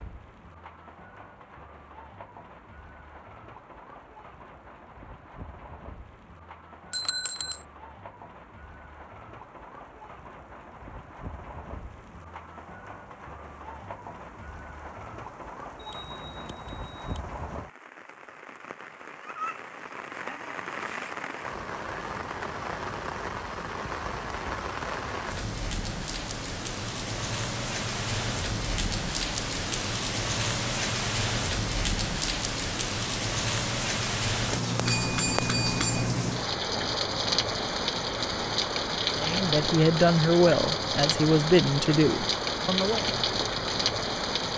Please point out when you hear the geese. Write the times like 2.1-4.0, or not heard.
not heard.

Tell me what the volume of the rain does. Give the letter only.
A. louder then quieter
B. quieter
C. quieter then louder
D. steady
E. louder
E.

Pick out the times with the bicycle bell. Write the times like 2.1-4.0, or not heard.
6.9-7.7, 15.8-17.2, 34.9-36.1.